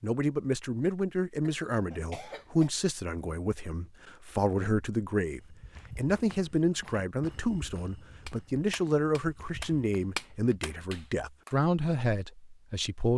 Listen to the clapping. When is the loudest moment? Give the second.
10 s.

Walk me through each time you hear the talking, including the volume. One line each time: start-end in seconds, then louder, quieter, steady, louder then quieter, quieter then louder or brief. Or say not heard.
0.0-13.1 steady.